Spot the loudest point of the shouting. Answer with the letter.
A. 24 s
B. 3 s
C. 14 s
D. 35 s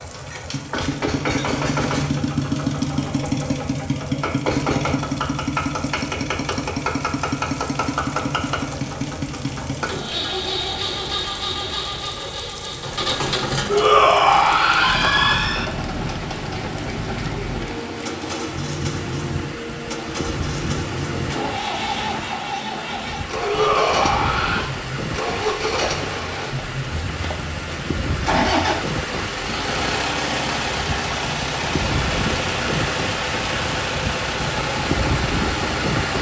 C.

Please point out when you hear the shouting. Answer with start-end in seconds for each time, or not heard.
13.7-15.7, 23.4-24.7.